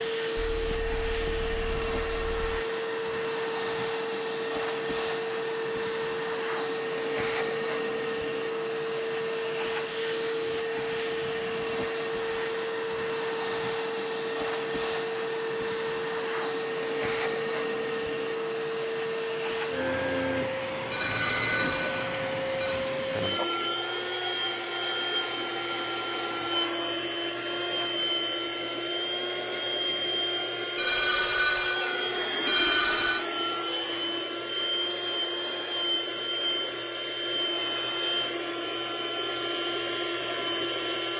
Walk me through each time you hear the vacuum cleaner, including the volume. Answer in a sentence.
You can hear the vacuum cleaner from 0.0 to 41.1 s, at a steady volume.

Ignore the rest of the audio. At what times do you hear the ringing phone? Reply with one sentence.
The ringing phone can be heard from 0.5 to 2.6 s, from 20.9 to 22.8 s and from 30.8 to 33.2 s.